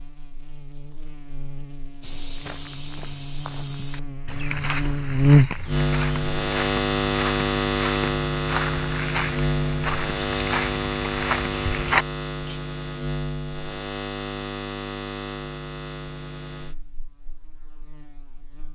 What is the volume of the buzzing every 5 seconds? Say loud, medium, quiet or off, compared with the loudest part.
quiet, loud, medium, quiet.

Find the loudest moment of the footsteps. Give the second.
12 s.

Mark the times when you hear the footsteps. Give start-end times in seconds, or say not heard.
2.0-12.6.